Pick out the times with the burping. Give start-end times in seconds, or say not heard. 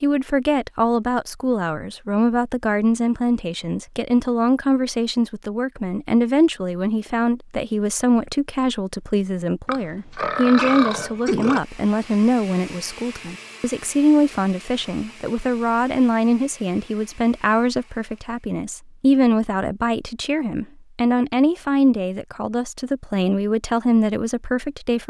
9.7-11.6.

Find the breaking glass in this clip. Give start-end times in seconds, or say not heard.
not heard.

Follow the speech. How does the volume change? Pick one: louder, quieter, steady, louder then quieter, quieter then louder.
steady.